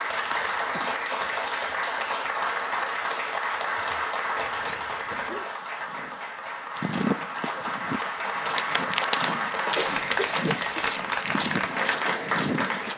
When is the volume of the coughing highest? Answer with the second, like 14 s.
10 s.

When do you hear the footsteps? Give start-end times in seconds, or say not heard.
5.5-12.9.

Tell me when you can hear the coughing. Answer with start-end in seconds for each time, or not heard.
0.3-0.9, 4.3-5.5, 9.8-10.8.